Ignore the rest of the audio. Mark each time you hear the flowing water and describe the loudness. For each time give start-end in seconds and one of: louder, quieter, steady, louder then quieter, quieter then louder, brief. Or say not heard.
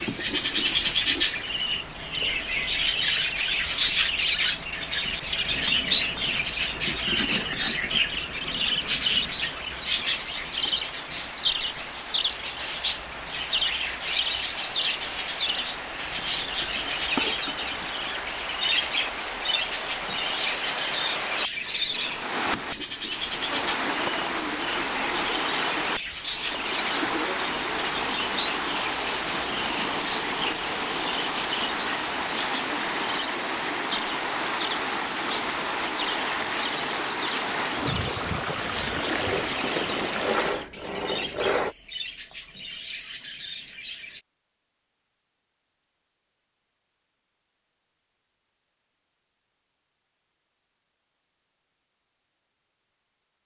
0.0-40.7 louder.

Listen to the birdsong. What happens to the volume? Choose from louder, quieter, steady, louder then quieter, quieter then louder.
quieter.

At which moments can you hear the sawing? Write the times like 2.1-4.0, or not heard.
39.1-41.8.